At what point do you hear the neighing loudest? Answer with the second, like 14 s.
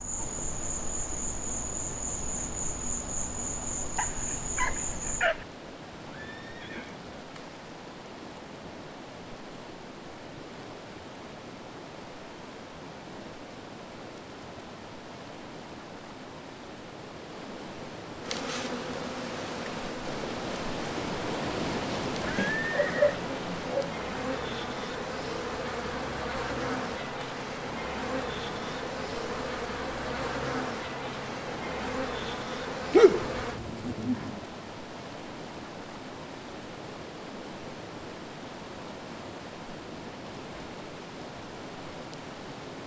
23 s.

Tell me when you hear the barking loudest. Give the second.
33 s.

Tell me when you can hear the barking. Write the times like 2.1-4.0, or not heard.
4.0-5.5, 22.4-23.9, 32.9-34.4.